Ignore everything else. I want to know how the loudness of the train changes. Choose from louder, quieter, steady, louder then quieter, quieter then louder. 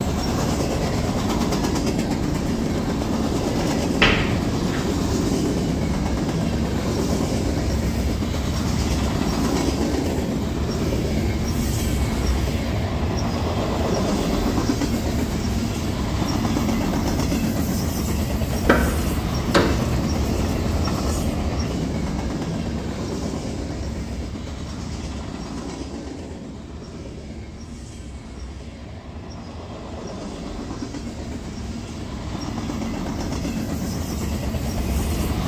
quieter.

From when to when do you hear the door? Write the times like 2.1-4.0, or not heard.
3.8-4.8, 18.5-19.9.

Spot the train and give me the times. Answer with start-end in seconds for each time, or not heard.
0.0-35.4.